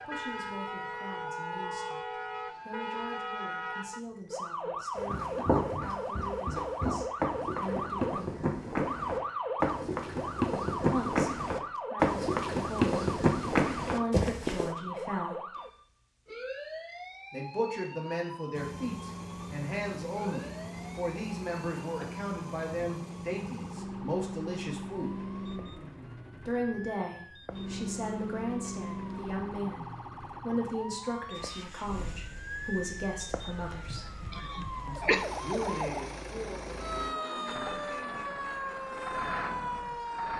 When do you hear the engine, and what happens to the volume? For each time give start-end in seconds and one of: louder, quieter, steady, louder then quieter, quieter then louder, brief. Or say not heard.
18.5-40.3 quieter then louder.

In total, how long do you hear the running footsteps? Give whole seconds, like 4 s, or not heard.
10 s.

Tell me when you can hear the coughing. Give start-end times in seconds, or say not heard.
33.9-35.2.